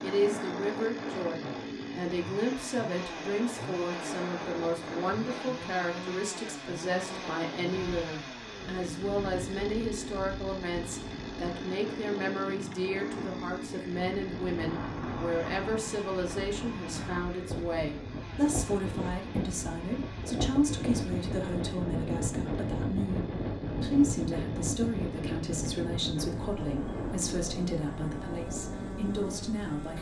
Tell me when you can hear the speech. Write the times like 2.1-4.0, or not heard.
0.0-29.9.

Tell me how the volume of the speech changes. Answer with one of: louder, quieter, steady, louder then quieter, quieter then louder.
steady.